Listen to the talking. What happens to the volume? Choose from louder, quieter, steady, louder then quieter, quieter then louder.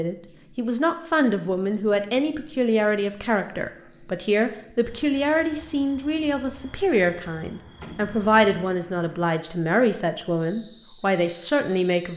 steady.